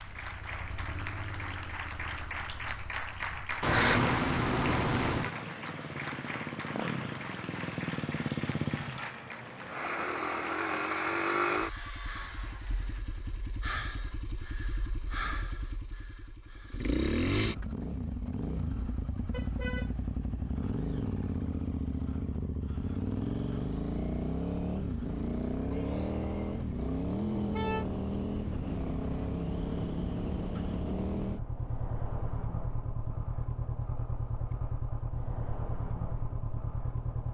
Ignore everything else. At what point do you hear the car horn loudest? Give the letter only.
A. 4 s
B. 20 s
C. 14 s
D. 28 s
A.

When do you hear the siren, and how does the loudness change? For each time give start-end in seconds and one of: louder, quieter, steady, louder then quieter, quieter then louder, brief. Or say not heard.
not heard.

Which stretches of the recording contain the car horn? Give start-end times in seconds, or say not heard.
3.6-5.3, 19.3-20.9, 26.8-27.9.